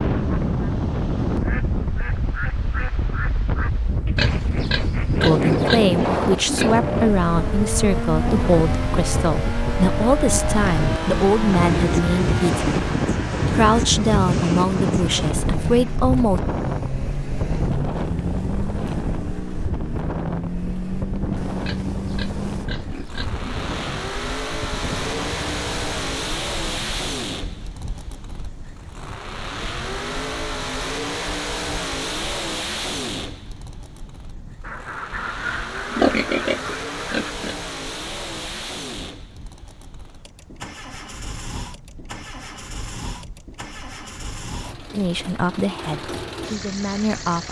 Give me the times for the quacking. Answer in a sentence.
You can hear the quacking from 0.3 to 5.7 s and from 34.6 to 37.4 s.